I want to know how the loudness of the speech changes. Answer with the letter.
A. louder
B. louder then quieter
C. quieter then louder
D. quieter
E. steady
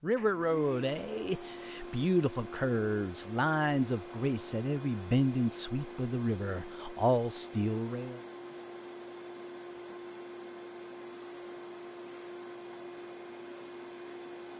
E.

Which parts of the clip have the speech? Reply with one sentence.
The speech can be heard from 0.0 to 8.2 s.